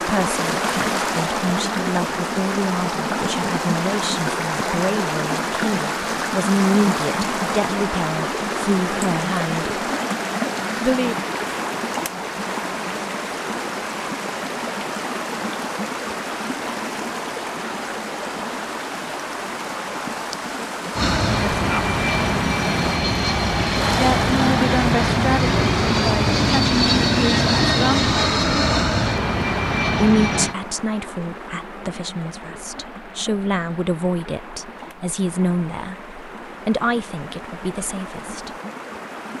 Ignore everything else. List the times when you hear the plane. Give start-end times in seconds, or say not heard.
20.9-30.6.